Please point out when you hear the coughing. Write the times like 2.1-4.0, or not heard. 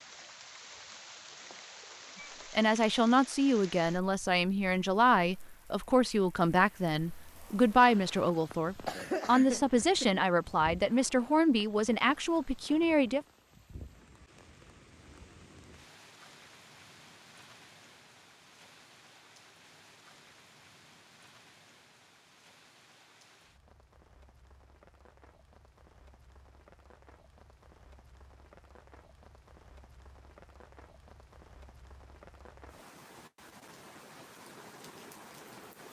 8.8-10.2.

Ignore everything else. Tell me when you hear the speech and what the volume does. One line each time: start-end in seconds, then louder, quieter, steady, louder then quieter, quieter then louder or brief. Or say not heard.
2.5-13.2 steady.